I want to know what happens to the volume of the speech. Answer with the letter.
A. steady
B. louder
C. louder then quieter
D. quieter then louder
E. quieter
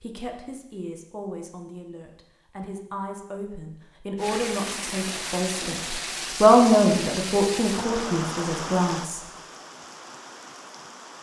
C.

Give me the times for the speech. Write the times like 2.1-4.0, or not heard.
0.0-9.2.